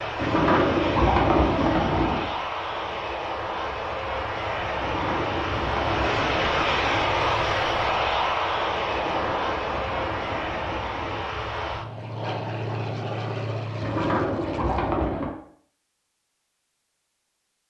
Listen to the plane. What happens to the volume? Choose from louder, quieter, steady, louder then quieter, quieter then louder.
louder then quieter.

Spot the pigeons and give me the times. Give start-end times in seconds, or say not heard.
0.1-2.3, 4.8-7.2, 8.9-11.3, 13.8-15.3.